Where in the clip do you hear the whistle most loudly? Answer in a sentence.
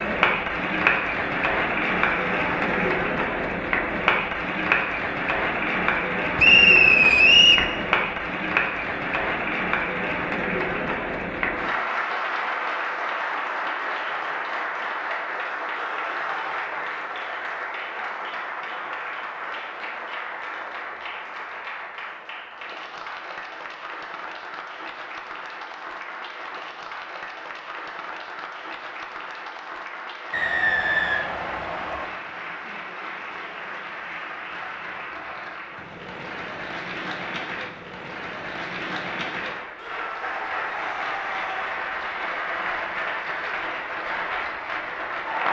The volume of the whistle peaks at 7 seconds.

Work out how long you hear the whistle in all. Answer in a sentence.
The whistle can be heard for 3 seconds in total.